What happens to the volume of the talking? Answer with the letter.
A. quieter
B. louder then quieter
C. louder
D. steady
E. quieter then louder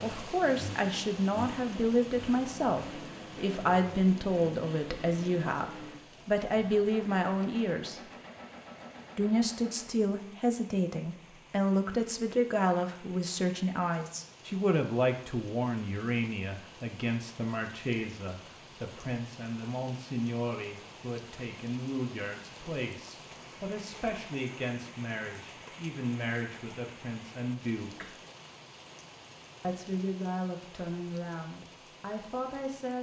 A.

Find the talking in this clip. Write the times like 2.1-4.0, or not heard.
0.0-8.0, 9.2-28.1, 29.6-32.9.